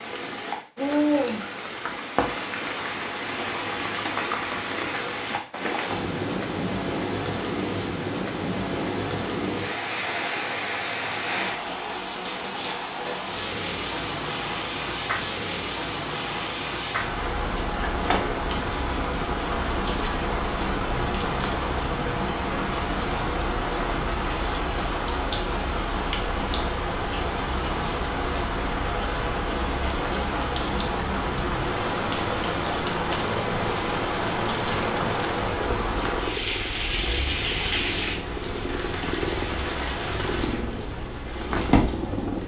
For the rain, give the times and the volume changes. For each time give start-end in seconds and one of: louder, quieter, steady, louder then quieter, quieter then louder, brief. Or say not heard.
0.0-42.4 steady.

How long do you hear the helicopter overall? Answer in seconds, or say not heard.
25 s.